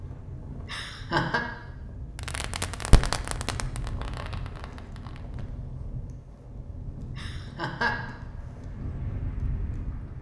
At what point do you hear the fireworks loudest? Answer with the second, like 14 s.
3 s.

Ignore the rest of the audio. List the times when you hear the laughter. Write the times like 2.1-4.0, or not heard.
0.5-1.4, 7.0-8.2.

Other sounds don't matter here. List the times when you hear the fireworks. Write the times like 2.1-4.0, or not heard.
2.1-5.5.